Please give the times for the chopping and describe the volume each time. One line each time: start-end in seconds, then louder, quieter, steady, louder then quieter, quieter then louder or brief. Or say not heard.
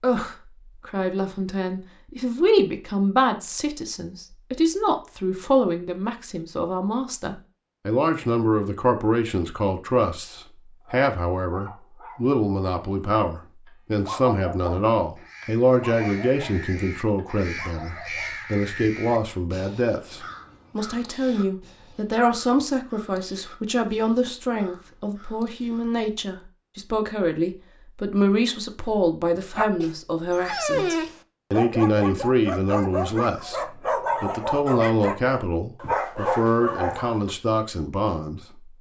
not heard.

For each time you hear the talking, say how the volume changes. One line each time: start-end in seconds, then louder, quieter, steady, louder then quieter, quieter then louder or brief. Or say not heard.
0.0-38.7 steady.